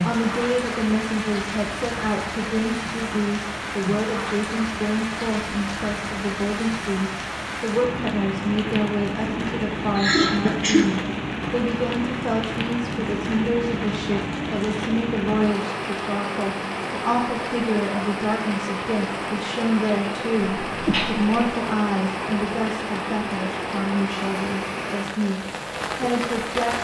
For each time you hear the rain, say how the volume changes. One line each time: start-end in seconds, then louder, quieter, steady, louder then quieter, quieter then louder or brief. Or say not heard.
0.0-26.7 steady.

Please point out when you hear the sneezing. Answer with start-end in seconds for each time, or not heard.
9.9-10.9, 20.6-21.4.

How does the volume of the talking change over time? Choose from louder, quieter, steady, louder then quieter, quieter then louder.
steady.